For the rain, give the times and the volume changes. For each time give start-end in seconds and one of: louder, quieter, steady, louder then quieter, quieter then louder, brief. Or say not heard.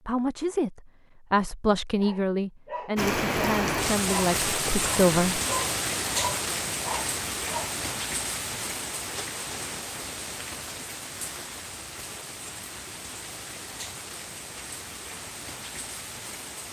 3.0-16.6 quieter.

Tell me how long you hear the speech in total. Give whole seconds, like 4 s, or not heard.
5 s.